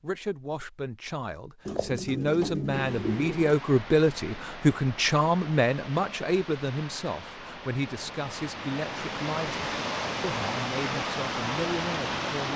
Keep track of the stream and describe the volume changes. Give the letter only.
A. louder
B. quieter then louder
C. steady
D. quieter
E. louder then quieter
A.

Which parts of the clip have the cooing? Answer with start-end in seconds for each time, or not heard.
1.6-3.5.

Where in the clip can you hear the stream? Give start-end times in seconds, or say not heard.
2.7-12.5.